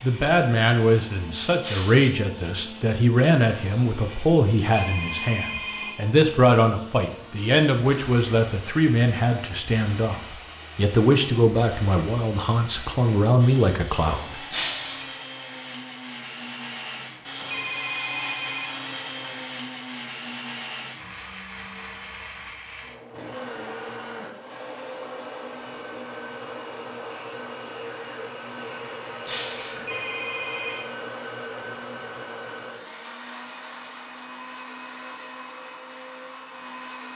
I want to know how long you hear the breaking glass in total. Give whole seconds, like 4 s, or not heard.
2 s.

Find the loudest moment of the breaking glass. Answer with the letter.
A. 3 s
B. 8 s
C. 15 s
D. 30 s
C.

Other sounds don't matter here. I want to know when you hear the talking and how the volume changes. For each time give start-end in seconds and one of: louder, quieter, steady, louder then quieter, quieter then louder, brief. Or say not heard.
0.0-14.4 steady.